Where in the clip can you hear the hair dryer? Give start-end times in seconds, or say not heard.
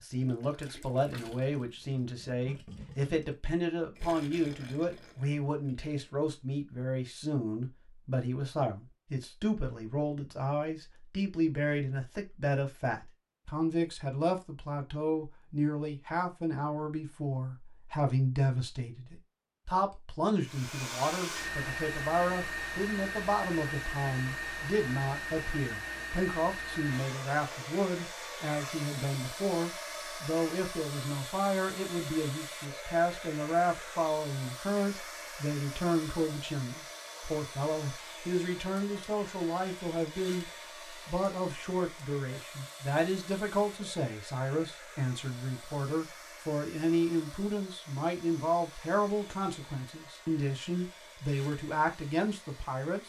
20.4-53.0.